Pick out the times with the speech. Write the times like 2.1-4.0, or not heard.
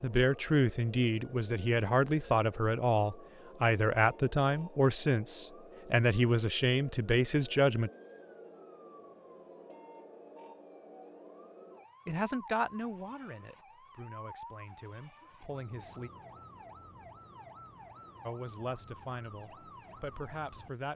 0.0-7.9, 12.1-16.1, 18.2-20.9.